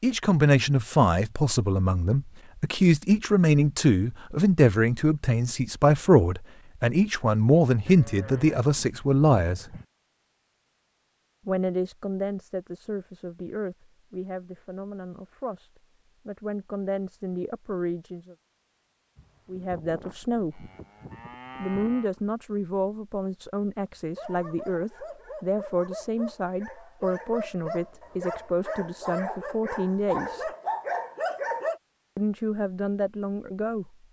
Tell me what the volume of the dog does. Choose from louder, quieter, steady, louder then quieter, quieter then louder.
louder.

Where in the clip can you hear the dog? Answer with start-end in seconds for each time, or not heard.
24.1-31.8.